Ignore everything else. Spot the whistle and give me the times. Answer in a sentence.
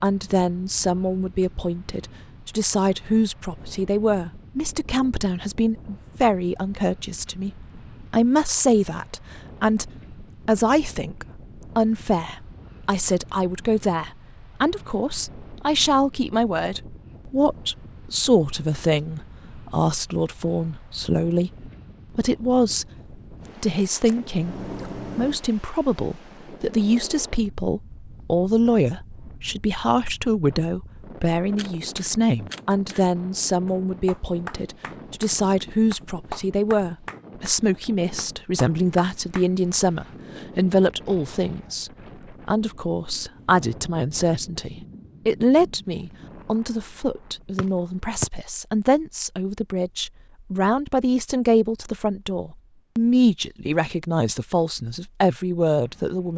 The whistle can be heard from 47.5 to 48.2 s.